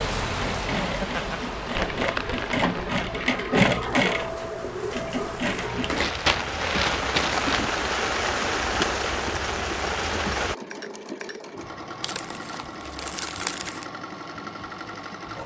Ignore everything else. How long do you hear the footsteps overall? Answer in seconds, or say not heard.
not heard.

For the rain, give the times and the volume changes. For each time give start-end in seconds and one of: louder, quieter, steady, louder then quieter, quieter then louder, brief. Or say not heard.
0.0-10.6 quieter then louder.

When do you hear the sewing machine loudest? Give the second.
4 s.